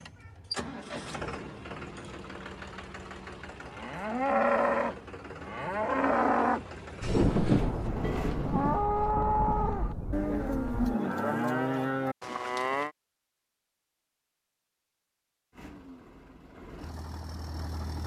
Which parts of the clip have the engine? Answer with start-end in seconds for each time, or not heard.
0.0-8.8, 15.5-18.0.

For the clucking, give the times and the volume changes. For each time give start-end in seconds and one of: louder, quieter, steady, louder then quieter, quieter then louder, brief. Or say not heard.
not heard.